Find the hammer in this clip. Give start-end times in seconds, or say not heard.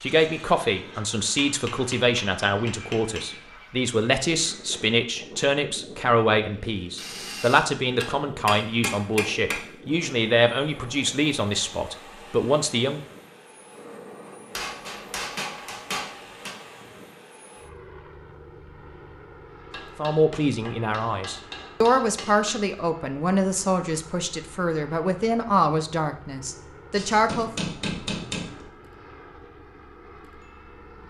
1.4-3.2, 7.0-9.6, 14.6-16.6, 19.7-22.6, 26.9-28.7.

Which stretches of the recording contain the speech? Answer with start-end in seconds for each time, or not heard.
0.0-13.0, 19.9-27.5.